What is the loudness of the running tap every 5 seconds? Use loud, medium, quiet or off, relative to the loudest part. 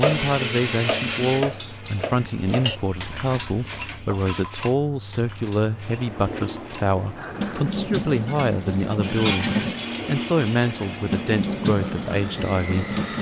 medium, loud, loud.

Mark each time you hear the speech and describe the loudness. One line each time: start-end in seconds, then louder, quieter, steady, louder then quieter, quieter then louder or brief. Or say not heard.
0.0-12.9 steady.